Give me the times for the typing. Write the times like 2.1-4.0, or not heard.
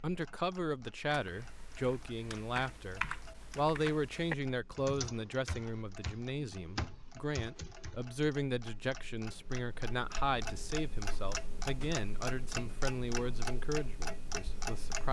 1.1-8.1.